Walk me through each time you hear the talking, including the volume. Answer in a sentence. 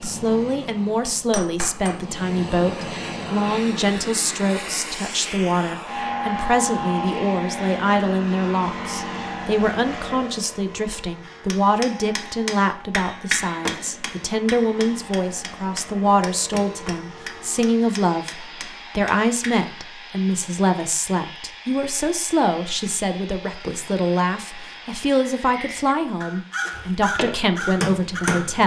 You can hear the talking from 0.0 to 28.6 s, at a steady volume.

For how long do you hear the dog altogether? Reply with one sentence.
The dog can't be heard in this clip.